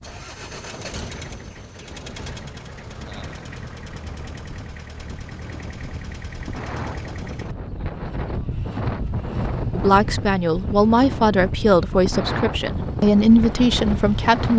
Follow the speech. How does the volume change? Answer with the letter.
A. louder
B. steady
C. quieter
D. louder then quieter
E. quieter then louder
B.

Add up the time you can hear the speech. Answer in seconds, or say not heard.
5 s.